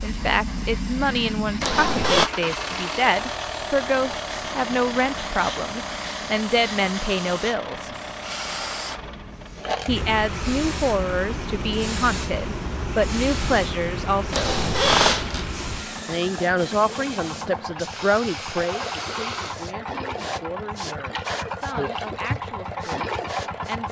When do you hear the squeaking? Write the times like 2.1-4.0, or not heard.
1.6-2.3, 14.3-15.5.